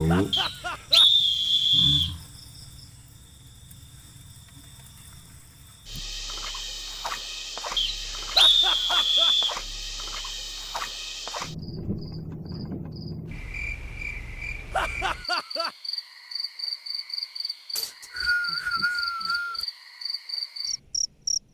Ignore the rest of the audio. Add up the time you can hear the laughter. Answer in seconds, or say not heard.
3 s.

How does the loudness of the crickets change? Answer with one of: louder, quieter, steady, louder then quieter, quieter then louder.
louder.